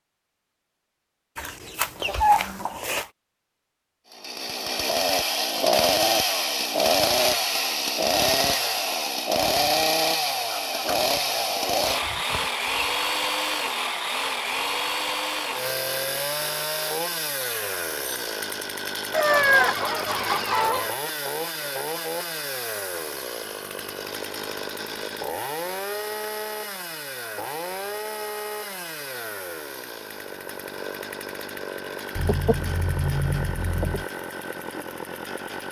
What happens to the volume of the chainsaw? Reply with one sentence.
The loudness of the chainsaw goes down.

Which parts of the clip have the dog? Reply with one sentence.
You can't hear the dog here.